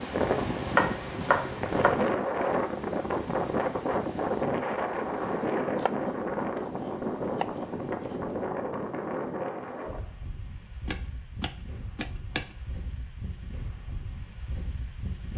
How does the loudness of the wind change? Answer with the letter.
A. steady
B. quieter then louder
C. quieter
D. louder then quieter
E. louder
C.